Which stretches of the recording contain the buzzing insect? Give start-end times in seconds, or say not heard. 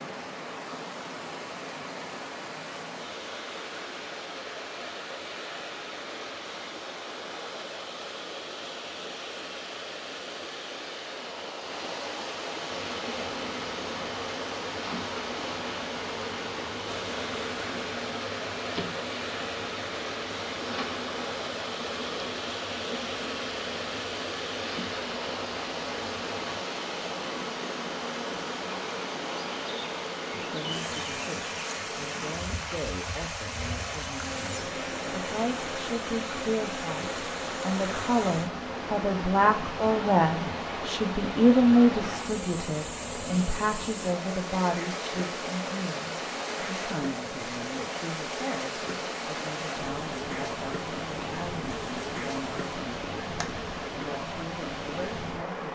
12.7-53.6.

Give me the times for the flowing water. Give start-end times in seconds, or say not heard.
0.0-55.7.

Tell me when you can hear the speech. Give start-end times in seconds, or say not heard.
30.4-53.1, 54.0-55.7.